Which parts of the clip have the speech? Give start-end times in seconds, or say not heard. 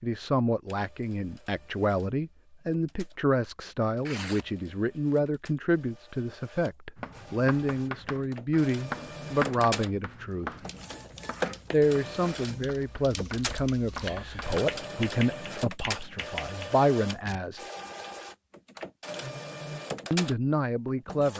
0.0-10.5, 11.7-17.6, 20.1-21.3.